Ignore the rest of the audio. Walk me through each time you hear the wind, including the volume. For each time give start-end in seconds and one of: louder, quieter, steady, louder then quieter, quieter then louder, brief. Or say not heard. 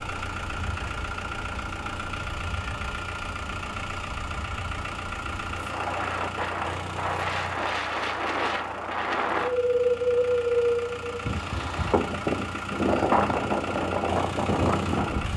0.2-15.3 louder.